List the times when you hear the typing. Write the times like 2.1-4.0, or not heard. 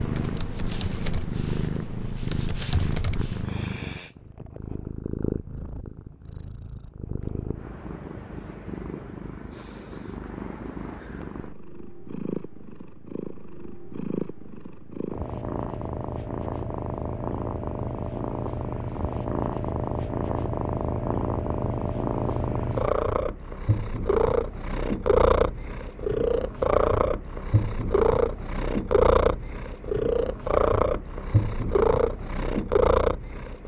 0.0-3.5.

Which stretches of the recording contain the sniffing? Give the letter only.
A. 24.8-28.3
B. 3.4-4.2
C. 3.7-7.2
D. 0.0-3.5
B.